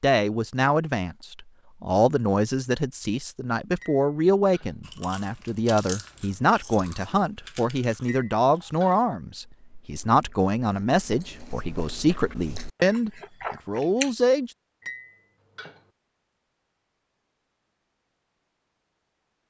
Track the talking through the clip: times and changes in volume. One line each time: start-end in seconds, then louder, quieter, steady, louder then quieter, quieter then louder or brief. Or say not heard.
0.0-14.5 steady.